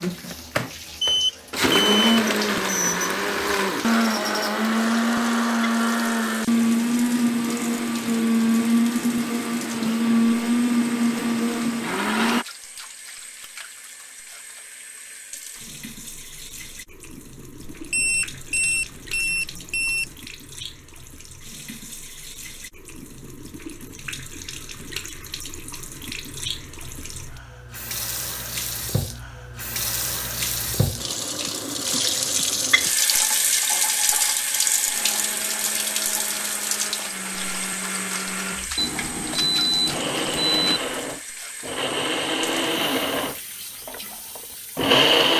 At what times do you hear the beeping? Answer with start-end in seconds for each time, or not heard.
1.0-2.1, 17.6-20.1, 38.8-40.8.